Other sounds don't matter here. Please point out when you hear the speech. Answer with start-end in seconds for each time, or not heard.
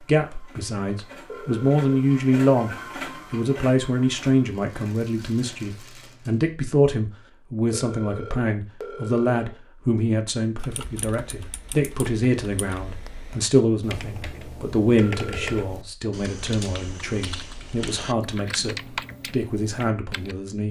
0.1-2.7, 3.3-20.6.